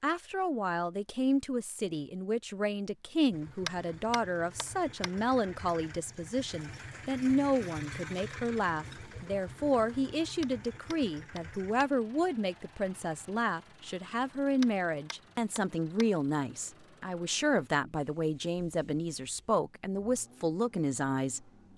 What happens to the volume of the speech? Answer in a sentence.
The volume of the speech stays about the same.